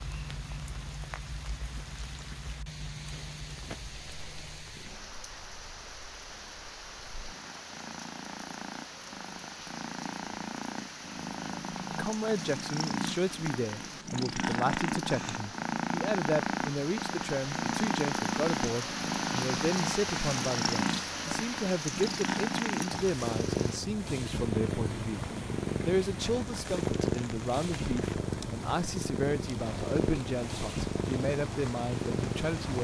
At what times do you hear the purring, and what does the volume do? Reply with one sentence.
The purring can be heard from 0.0 to 32.8 s, getting louder.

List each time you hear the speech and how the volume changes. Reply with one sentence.
The speech can be heard from 11.9 to 32.8 s, at a steady volume.